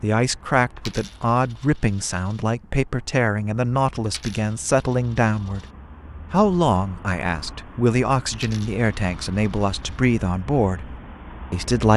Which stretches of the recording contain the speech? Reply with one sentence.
You can hear the speech from 0.0 to 5.7 s, from 6.3 to 10.9 s and from 11.5 to 11.9 s.